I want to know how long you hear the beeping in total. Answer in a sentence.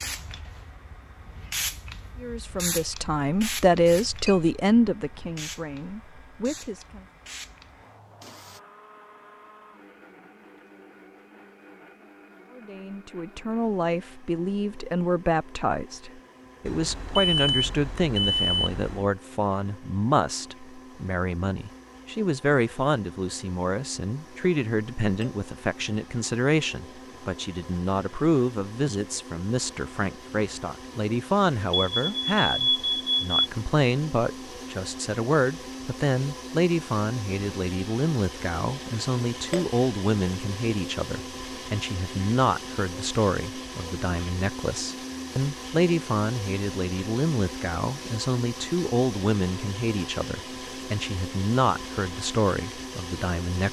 You can hear the beeping for 4 seconds altogether.